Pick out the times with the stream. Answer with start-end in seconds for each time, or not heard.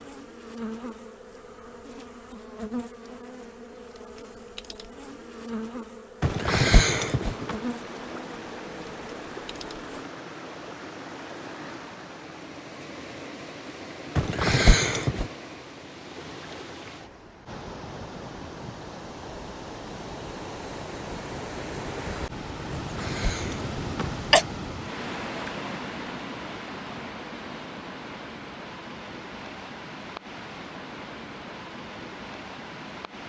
6.2-33.2.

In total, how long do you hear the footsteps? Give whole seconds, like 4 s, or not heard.
not heard.